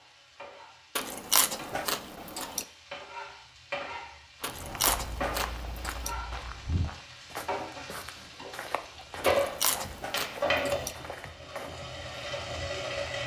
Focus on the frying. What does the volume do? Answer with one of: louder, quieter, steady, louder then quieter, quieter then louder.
louder.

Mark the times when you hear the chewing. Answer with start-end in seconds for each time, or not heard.
0.9-2.6, 4.4-6.2, 9.2-10.9.